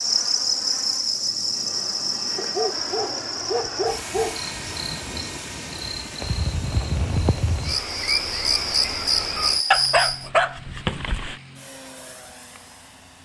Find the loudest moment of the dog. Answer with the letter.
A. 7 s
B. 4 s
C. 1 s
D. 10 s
D.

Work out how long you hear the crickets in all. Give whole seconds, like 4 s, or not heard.
10 s.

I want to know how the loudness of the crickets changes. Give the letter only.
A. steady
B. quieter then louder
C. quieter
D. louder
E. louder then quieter
B.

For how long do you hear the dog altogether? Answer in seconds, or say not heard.
4 s.